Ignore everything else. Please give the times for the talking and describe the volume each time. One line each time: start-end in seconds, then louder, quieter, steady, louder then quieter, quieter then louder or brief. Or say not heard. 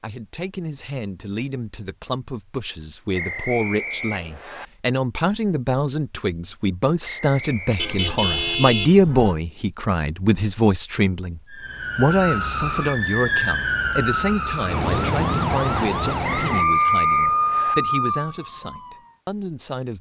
0.0-19.9 louder then quieter.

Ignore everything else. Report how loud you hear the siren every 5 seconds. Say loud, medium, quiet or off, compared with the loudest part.
off, off, loud, loud.